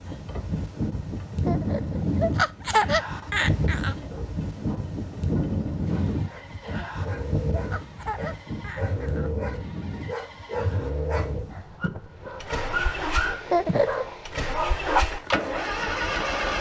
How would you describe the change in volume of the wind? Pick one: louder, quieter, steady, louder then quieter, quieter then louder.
quieter.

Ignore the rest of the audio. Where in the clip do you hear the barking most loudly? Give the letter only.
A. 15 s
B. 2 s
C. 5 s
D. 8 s
A.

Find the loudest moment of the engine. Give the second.
16 s.